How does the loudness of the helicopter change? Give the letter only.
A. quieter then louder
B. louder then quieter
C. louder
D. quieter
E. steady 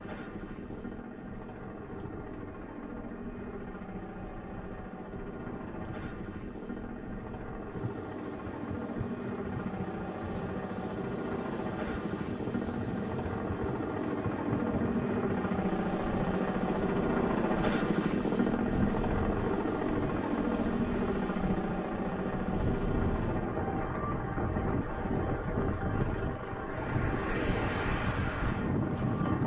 B.